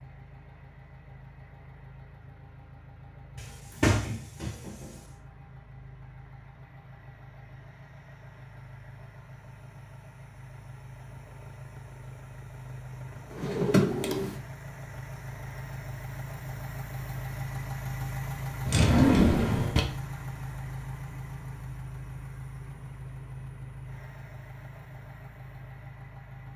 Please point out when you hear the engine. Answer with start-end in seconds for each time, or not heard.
0.0-26.5.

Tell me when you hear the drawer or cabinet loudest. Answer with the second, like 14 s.
19 s.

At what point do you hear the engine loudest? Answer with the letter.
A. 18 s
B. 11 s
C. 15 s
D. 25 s
A.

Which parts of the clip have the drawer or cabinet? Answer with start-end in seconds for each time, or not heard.
3.4-4.9, 13.3-14.3, 18.6-19.9.